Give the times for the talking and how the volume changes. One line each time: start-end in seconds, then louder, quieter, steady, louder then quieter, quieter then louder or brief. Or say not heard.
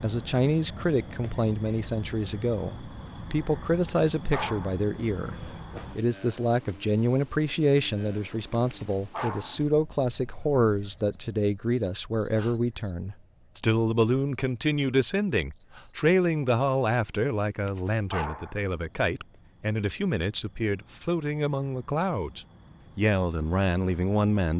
0.0-24.5 steady.